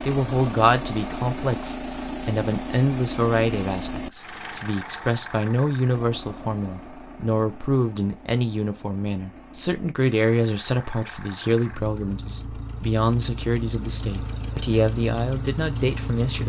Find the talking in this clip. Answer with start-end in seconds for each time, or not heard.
0.0-16.4.